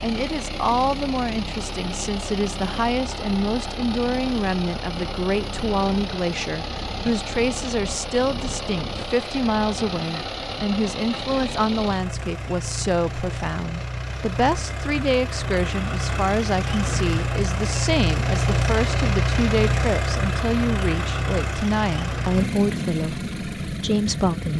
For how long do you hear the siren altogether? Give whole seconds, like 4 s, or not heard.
not heard.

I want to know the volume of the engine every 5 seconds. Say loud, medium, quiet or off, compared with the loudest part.
medium, medium, medium, loud, loud.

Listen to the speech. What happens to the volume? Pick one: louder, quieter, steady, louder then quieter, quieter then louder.
steady.